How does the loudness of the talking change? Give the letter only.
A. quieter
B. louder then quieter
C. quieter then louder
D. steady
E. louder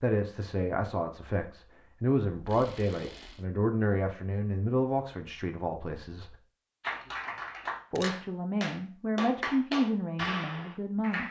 D.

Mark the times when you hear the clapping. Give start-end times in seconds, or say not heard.
6.8-11.2.